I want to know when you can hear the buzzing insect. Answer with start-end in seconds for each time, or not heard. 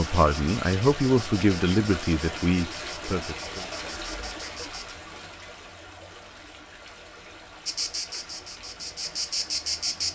0.0-5.0, 7.7-10.1.